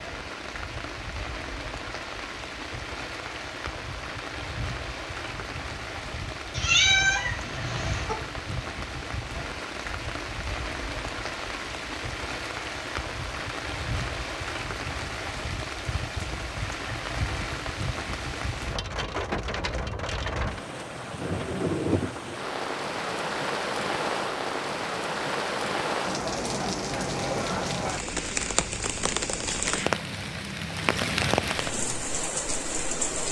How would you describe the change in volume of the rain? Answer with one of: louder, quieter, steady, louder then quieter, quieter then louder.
louder.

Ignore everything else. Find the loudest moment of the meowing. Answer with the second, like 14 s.
7 s.